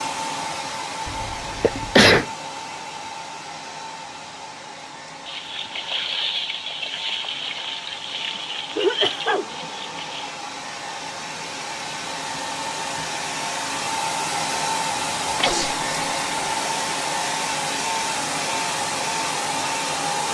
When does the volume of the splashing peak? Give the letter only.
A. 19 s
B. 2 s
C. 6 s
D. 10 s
C.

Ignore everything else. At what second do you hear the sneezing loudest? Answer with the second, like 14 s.
2 s.